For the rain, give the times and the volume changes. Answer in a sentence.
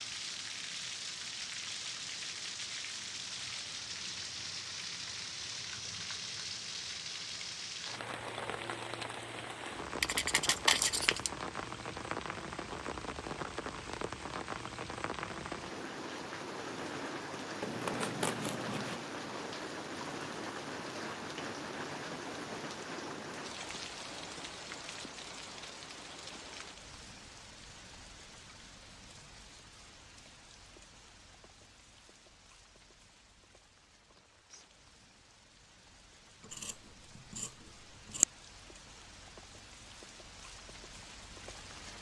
You can hear the rain from 0.0 to 41.9 s, getting quieter.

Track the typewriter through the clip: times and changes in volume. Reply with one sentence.
The typewriter can't be heard in this clip.